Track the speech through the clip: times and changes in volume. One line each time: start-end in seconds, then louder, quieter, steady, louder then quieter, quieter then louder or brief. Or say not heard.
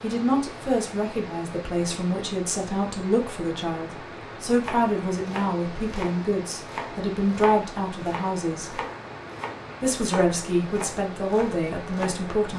0.0-8.8 steady
9.8-12.5 brief.